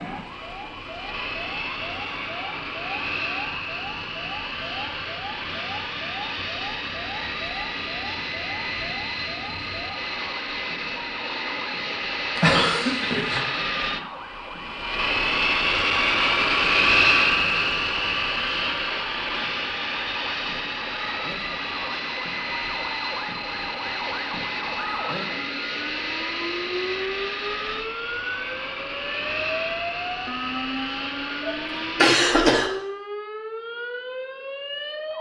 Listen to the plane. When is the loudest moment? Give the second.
17 s.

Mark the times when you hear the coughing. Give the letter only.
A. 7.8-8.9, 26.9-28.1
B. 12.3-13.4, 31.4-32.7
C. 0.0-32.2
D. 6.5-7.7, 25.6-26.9
B.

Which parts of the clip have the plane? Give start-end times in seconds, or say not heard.
0.0-32.2.